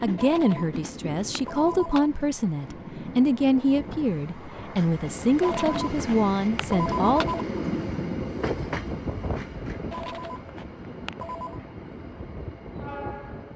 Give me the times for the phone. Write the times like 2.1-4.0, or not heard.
0.1-2.1, 5.4-7.5, 9.9-11.6.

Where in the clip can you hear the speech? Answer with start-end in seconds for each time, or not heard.
0.0-7.3.